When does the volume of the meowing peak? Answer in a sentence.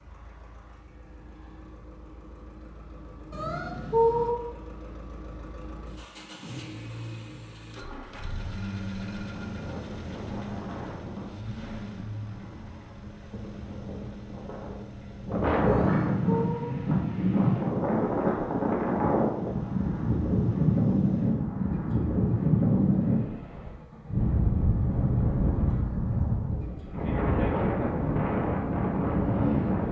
The loudest moment of the meowing is at 4 seconds.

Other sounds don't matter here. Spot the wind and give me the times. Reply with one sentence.
The wind can be heard from 8.9 to 29.8 s.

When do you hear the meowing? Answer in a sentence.
The meowing can be heard from 3.3 to 4.3 s and from 15.7 to 16.6 s.